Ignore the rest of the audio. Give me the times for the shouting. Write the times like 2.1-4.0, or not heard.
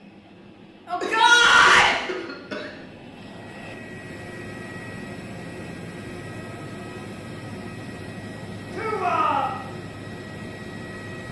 0.8-1.9, 8.7-9.5.